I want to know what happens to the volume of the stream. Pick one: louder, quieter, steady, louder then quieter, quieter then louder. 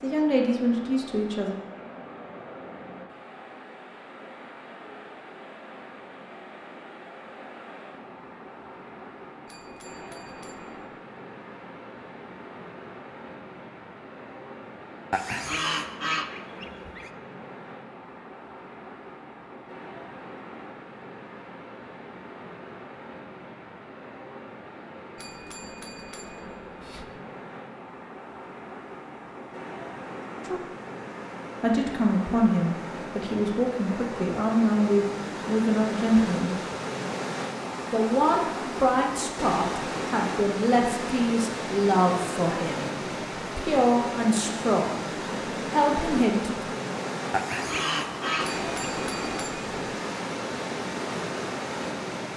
louder.